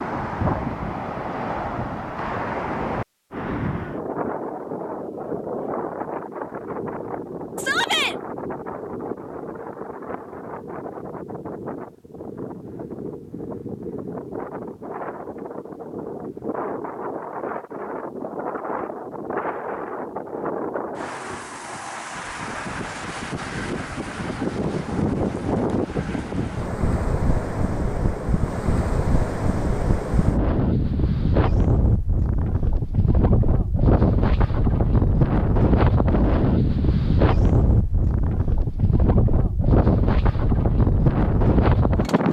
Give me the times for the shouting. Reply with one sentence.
The shouting can be heard from 7.5 to 8.2 s.